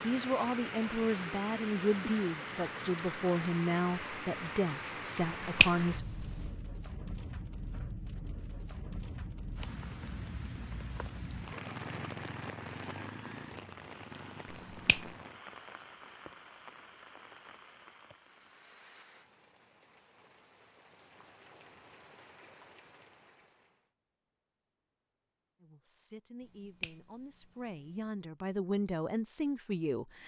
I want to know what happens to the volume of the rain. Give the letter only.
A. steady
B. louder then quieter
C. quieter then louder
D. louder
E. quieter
E.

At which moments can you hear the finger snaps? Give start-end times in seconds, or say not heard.
5.4-6.2, 14.5-15.1, 26.4-28.1.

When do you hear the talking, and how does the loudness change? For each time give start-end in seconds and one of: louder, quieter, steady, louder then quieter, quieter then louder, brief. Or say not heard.
0.0-6.0 steady
25.6-30.2 louder.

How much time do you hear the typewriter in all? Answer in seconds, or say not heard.
not heard.